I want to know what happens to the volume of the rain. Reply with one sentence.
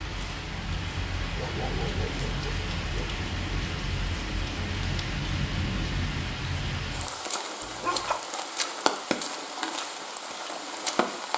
The volume of the rain stays about the same.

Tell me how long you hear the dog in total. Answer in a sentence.
The dog can be heard for 2 seconds in total.